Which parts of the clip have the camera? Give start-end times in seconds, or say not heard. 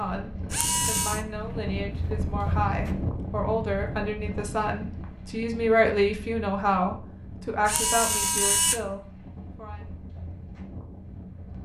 0.5-1.2, 7.7-8.8.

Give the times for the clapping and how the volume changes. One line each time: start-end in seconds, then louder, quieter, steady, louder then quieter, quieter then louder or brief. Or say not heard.
not heard.